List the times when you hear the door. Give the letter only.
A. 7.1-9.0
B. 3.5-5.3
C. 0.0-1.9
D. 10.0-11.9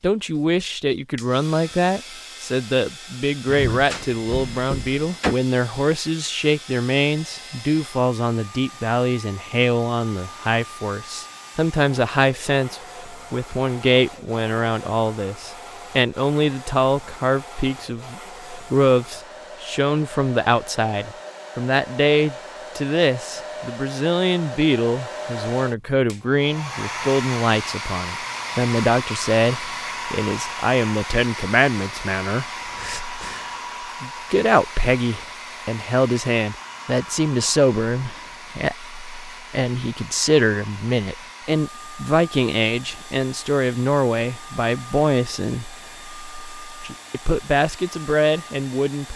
B.